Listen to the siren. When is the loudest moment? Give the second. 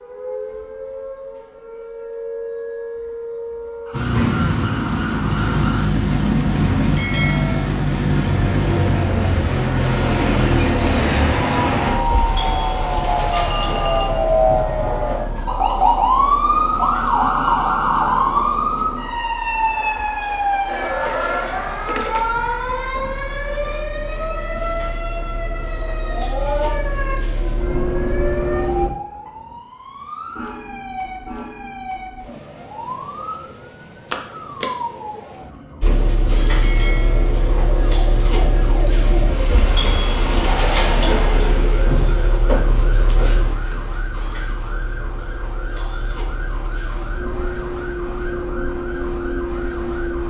16 s.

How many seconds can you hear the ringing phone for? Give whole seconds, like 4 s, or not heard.
3 s.